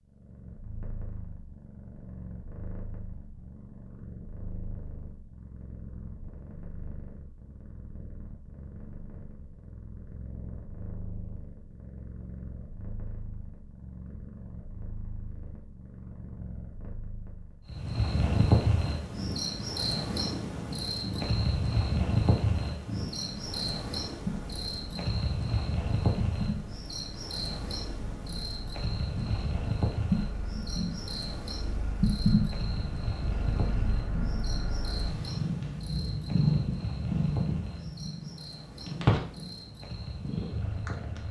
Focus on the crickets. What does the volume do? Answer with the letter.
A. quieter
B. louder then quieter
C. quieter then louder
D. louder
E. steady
A.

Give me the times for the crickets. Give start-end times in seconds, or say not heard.
17.6-41.2.